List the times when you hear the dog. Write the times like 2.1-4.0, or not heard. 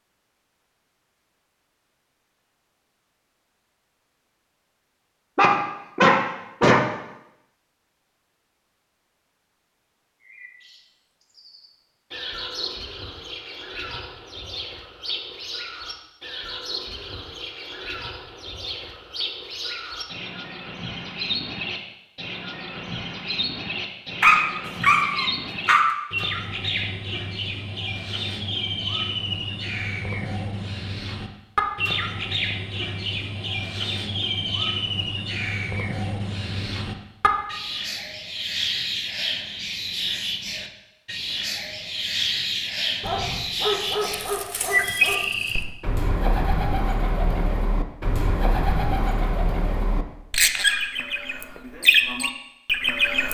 5.3-6.8, 24.2-25.9, 43.0-45.6.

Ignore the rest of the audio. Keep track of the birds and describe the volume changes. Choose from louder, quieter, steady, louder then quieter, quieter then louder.
louder.